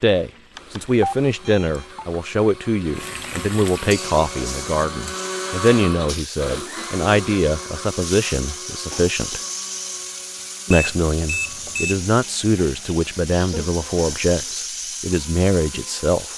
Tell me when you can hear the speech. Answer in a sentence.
The speech can be heard from 0.0 to 9.4 s and from 10.7 to 16.3 s.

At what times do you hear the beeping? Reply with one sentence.
The beeping can be heard from 0.6 to 2.0 s and from 10.7 to 12.0 s.